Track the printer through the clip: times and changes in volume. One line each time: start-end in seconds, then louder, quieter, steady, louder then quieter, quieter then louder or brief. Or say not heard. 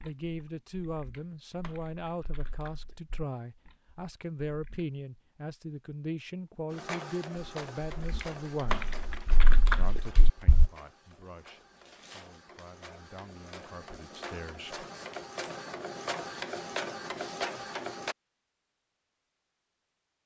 6.7-18.1 quieter then louder.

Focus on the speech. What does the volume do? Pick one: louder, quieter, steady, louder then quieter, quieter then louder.
quieter.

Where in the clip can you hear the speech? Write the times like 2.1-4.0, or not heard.
0.0-8.9, 9.7-14.8.